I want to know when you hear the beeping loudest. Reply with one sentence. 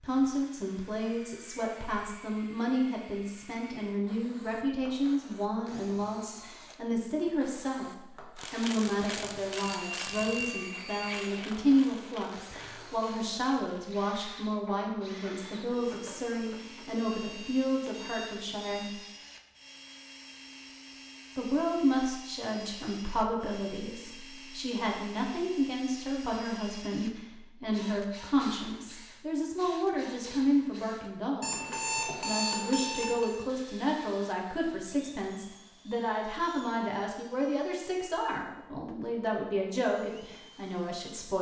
The volume of the beeping peaks at 32 seconds.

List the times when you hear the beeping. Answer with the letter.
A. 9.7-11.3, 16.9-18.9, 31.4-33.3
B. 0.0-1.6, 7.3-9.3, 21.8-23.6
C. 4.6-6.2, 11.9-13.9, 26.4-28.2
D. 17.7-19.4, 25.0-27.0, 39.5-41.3
A.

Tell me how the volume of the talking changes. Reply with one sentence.
The loudness of the talking stays about the same.